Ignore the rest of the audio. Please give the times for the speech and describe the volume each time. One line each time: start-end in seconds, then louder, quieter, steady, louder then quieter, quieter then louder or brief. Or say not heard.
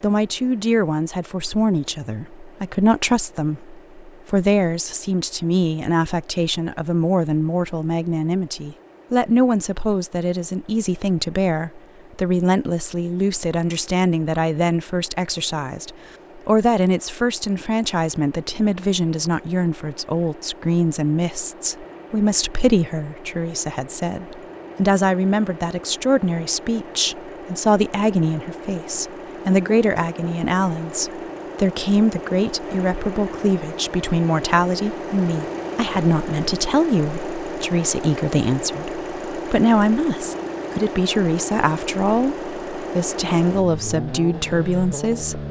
0.0-45.4 steady.